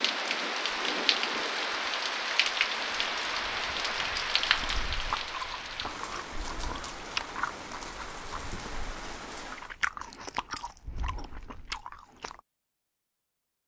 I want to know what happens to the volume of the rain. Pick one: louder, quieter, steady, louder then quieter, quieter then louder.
quieter.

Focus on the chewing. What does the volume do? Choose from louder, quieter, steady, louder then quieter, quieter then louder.
louder.